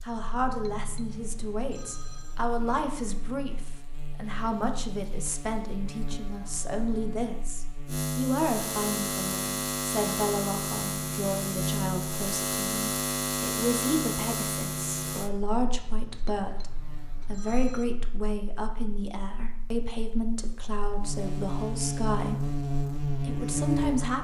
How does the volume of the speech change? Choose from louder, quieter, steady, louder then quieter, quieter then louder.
steady.